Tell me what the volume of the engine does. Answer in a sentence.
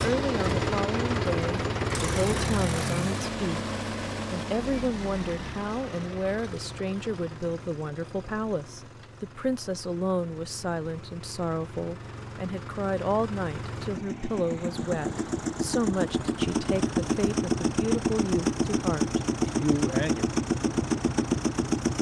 The loudness of the engine goes down, then up.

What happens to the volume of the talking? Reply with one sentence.
The loudness of the talking stays about the same.